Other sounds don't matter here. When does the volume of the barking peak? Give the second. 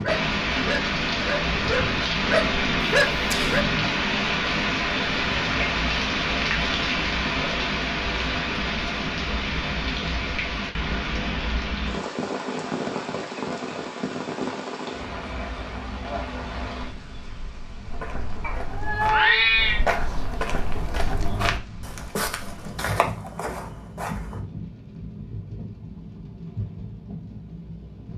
3 s.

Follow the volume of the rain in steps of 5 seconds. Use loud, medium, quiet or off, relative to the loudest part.
loud, loud, medium, quiet, quiet, quiet.